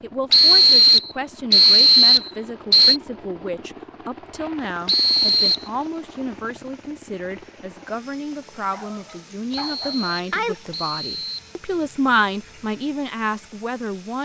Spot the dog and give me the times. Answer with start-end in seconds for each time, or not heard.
8.7-10.6.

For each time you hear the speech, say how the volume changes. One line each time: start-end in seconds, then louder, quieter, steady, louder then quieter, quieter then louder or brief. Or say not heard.
0.0-14.2 louder.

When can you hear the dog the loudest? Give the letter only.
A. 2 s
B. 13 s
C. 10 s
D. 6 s
C.